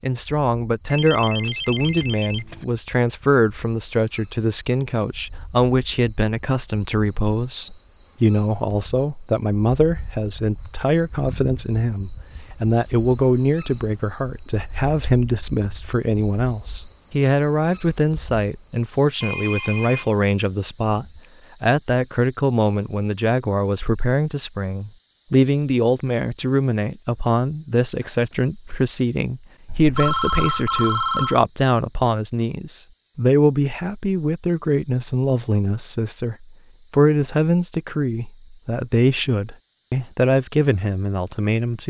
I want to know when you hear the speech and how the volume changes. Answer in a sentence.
You can hear the speech from 0.0 to 41.8 s, at a steady volume.